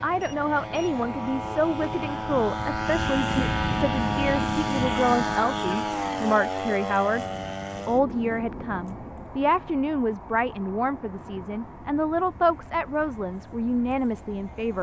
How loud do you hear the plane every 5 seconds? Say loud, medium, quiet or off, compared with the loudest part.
loud, loud, quiet.